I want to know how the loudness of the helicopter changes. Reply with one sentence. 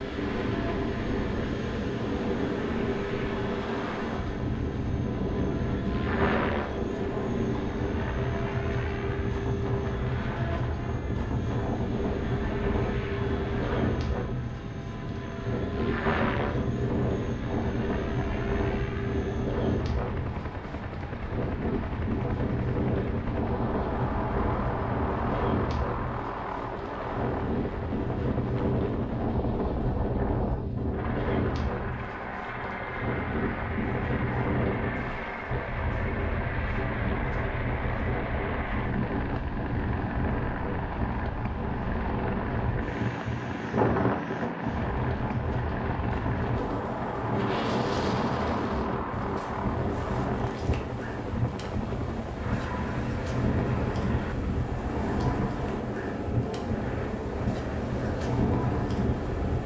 The loudness of the helicopter stays about the same.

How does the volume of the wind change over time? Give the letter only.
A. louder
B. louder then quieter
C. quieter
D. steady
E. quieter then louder
D.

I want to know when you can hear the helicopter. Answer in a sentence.
You can hear the helicopter from 0.0 to 59.6 s.